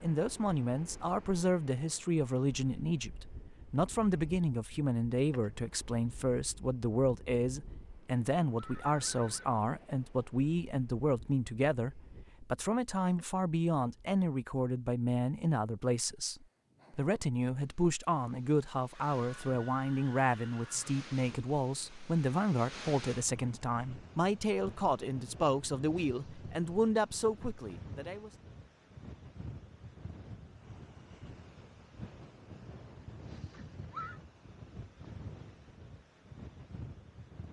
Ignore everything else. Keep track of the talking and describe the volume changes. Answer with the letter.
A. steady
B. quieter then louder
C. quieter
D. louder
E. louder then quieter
A.